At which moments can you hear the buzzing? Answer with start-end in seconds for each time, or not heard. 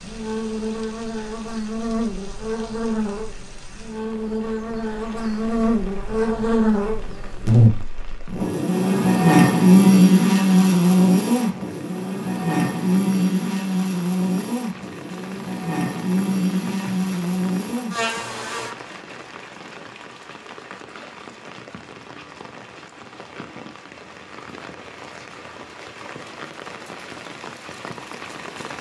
0.0-18.8.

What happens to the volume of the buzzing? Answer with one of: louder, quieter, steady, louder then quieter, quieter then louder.
louder then quieter.